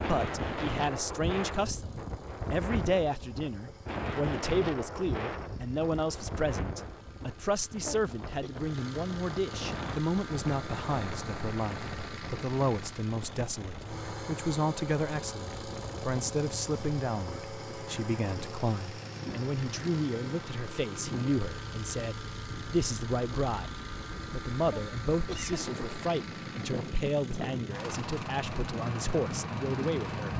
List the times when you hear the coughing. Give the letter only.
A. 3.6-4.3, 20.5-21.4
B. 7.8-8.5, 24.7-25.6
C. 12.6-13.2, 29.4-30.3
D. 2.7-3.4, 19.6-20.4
B.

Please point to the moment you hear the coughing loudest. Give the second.
25 s.